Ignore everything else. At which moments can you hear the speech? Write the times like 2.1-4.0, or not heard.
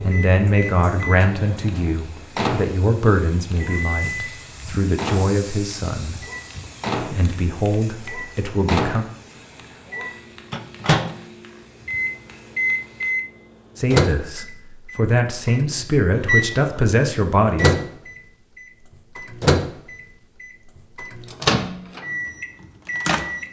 0.0-6.2, 7.1-9.1, 13.8-17.8.